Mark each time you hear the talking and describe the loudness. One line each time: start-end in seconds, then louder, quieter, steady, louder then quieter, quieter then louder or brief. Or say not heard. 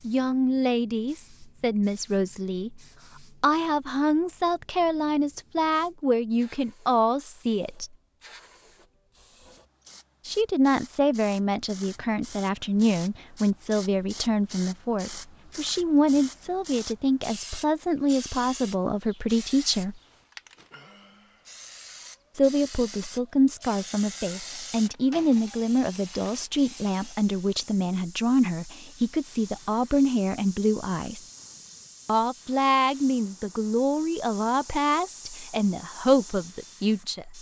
0.0-2.8 brief
3.4-7.9 steady
10.2-20.0 steady
22.4-31.2 steady
32.0-37.3 quieter then louder.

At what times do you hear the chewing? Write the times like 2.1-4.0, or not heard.
not heard.